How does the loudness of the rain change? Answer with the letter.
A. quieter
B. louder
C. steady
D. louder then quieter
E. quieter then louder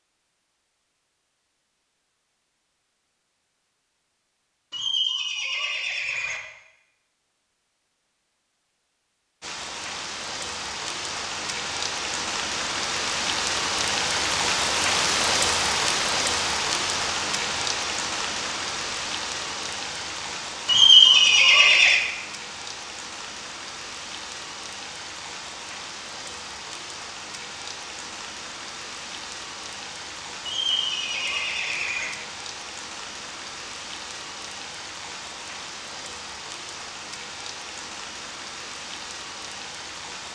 A.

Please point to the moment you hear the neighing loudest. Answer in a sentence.
The loudest moment of the neighing is at 21 seconds.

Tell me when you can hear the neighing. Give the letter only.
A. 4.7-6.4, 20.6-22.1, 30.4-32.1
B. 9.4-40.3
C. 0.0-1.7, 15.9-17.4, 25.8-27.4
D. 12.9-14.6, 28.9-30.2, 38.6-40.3
A.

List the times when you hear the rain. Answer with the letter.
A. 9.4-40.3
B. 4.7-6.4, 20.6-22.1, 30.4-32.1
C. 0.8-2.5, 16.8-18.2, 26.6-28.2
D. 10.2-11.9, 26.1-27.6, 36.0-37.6
A.